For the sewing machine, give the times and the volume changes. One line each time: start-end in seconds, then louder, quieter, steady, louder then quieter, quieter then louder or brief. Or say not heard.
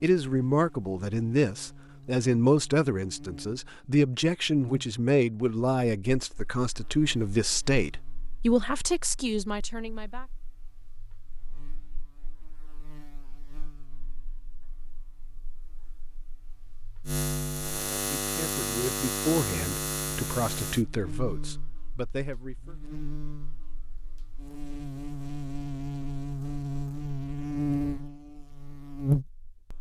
not heard.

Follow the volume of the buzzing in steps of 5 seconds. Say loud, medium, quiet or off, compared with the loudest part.
quiet, quiet, quiet, loud, medium, loud.